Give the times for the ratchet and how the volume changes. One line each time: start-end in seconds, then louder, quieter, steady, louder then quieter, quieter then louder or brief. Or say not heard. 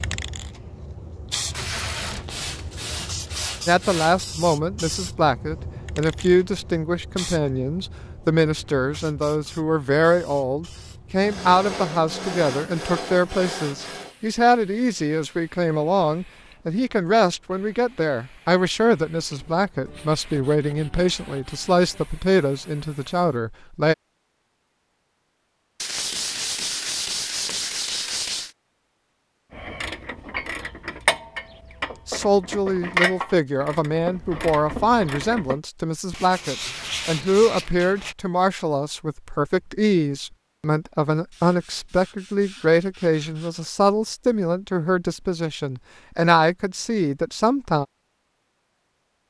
29.5-35.6 louder then quieter.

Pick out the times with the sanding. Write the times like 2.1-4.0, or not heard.
2.2-4.2, 11.2-14.2, 19.3-22.1, 25.8-28.6, 36.1-38.1, 41.3-43.7.